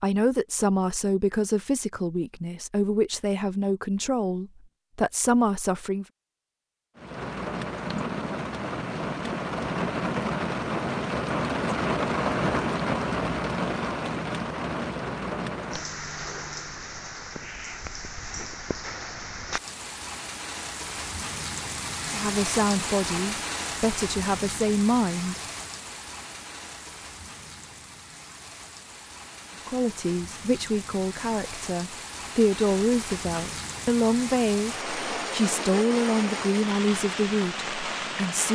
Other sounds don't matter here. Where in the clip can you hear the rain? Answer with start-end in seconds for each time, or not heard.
7.0-38.5.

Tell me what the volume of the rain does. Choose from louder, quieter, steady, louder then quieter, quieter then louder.
quieter then louder.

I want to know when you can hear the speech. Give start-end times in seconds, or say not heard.
0.0-6.0, 22.1-25.4, 29.6-38.5.